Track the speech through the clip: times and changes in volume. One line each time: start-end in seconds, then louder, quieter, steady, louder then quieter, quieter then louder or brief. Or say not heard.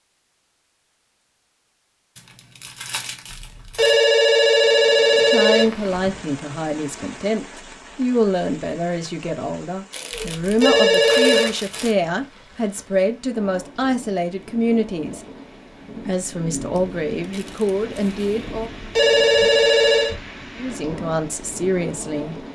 5.2-15.2 steady
16.1-18.7 brief
20.6-22.4 brief.